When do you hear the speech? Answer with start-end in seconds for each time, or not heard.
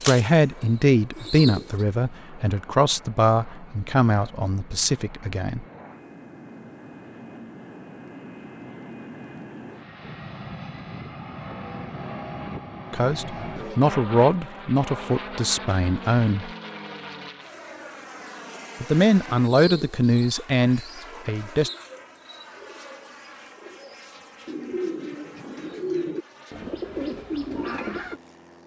0.1-5.7, 12.9-16.5, 18.8-21.7.